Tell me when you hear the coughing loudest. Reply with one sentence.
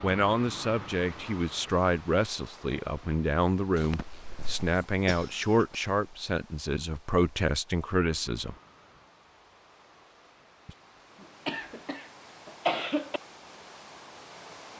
The volume of the coughing peaks at 13 seconds.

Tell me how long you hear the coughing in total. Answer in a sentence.
The coughing can be heard for 4 seconds in total.